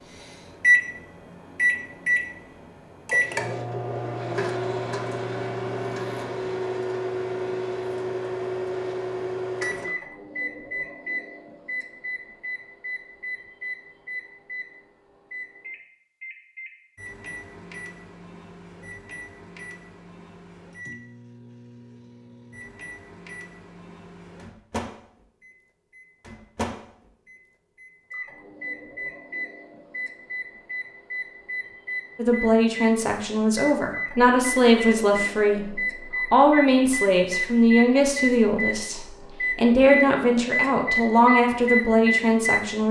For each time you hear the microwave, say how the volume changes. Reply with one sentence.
You can hear the microwave from 0.1 to 42.8 s, getting quieter then louder.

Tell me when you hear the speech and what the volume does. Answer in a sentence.
You can hear the speech from 32.1 to 42.8 s, at a steady volume.